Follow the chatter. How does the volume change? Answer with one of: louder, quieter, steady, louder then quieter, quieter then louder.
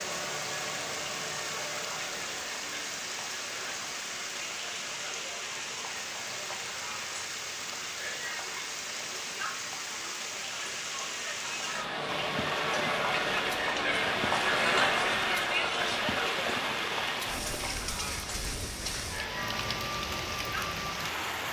louder then quieter.